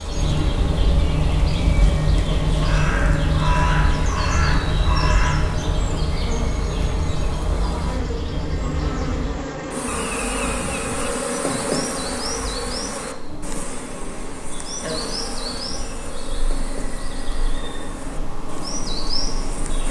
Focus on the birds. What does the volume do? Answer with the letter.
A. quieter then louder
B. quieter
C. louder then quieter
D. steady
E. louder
B.